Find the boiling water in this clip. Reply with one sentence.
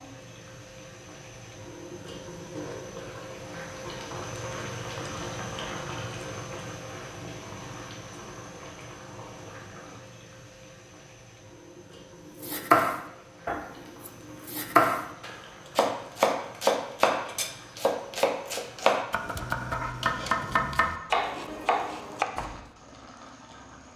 The boiling water can be heard from 0.0 to 23.9 s.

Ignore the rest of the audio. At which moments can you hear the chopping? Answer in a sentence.
You can hear the chopping from 12.4 to 22.6 s.